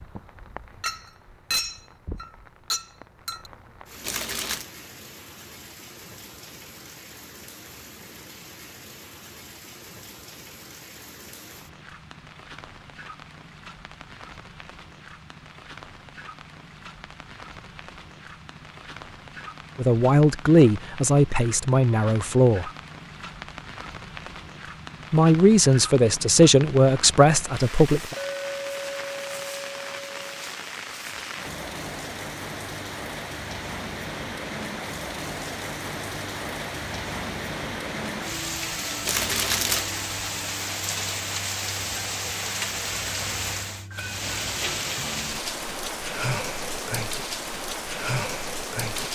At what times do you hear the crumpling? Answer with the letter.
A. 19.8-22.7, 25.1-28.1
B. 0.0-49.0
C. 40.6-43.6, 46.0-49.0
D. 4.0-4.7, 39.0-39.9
D.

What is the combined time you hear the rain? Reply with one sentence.
The rain can be heard for 49 seconds in total.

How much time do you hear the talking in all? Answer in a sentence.
You can hear the talking for 6 seconds altogether.